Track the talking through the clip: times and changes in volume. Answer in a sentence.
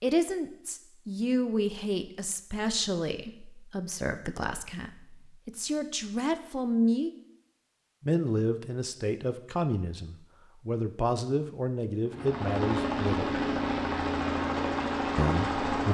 The talking can be heard from 0.0 to 7.1 s, getting quieter then louder; from 8.0 to 13.3 s, at a steady volume; and briefly from 15.2 to 15.8 s.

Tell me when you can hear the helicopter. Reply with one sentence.
You can hear the helicopter from 12.1 to 15.8 s.